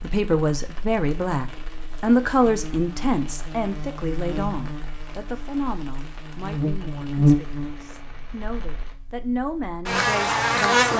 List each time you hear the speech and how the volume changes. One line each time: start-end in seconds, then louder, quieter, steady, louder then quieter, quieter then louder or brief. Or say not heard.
0.0-10.9 quieter then louder.